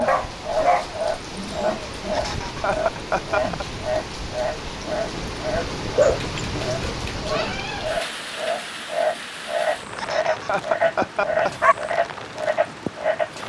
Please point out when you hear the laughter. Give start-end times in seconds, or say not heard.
2.1-3.6, 9.9-11.5.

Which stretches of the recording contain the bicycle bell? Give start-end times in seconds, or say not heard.
not heard.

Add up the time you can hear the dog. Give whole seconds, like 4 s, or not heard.
4 s.